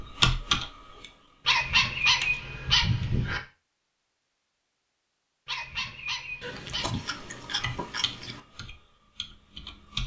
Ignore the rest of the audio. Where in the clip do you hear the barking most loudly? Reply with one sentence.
The volume of the barking peaks at 2 seconds.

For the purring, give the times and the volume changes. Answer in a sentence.
The purring can't be heard in this clip.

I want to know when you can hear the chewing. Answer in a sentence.
You can hear the chewing from 6.4 to 8.4 s.